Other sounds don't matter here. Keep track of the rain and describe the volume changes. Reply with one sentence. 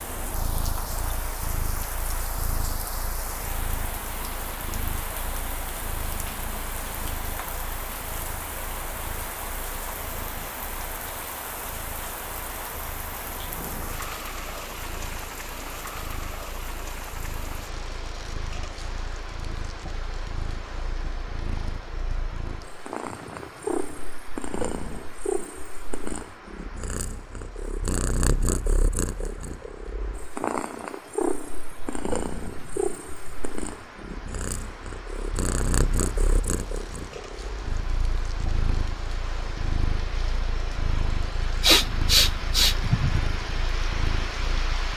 The loudness of the rain goes down, then up.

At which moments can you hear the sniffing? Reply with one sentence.
The sniffing can be heard from 41.6 to 43.3 s.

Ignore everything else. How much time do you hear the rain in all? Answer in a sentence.
The rain can be heard for 45 seconds in total.